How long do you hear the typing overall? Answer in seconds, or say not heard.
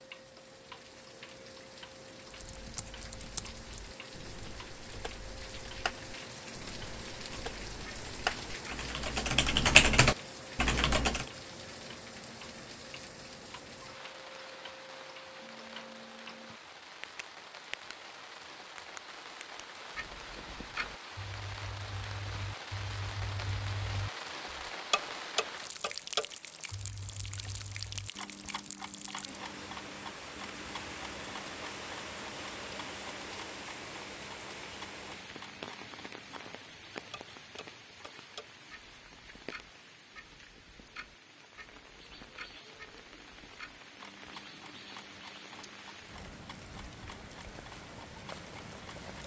9 s.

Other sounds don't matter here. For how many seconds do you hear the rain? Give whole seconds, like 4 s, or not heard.
49 s.